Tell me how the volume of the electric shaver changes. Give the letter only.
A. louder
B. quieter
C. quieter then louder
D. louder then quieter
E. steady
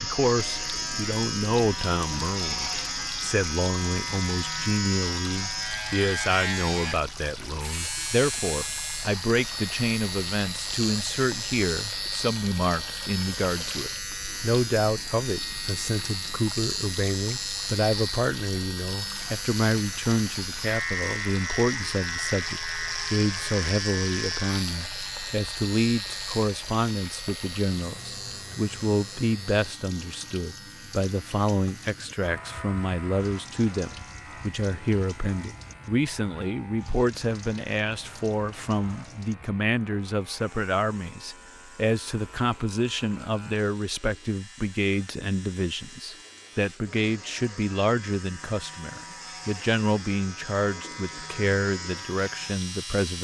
B.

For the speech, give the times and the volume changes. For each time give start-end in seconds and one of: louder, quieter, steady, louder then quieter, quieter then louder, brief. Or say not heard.
0.0-53.1 steady.